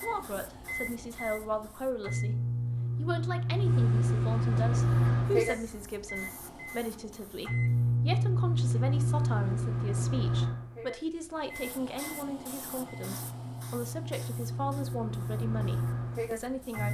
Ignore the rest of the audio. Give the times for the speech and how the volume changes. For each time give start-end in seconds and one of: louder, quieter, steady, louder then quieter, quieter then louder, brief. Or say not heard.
0.0-16.9 steady.